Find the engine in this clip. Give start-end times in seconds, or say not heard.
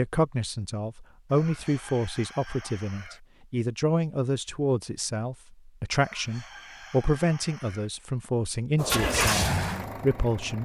8.8-10.6.